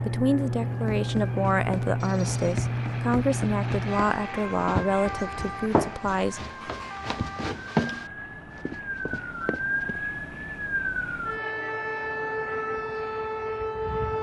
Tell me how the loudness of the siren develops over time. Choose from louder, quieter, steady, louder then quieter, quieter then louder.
quieter then louder.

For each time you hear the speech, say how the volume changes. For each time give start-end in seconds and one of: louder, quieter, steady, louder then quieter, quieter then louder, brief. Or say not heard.
0.0-6.5 steady.